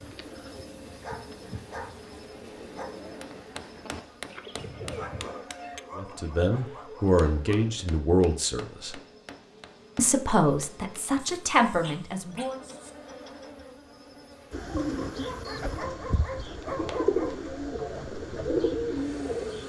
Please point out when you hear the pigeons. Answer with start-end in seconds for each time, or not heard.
0.0-5.5, 14.5-19.6.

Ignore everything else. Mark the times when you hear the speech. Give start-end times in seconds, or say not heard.
6.0-8.9, 9.9-12.6.